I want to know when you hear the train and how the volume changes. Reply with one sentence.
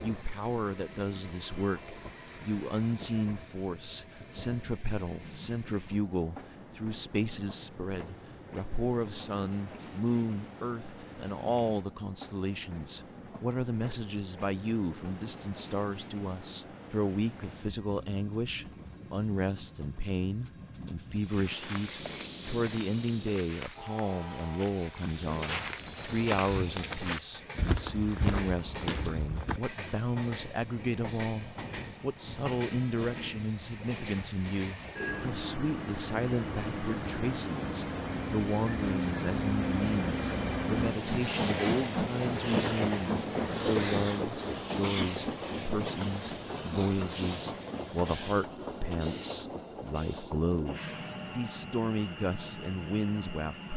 You can hear the train from 0.0 to 53.7 s, getting louder.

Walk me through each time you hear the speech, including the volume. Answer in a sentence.
You can hear the speech from 0.0 to 53.7 s, at a steady volume.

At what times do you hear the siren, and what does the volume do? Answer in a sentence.
You can't hear the siren here.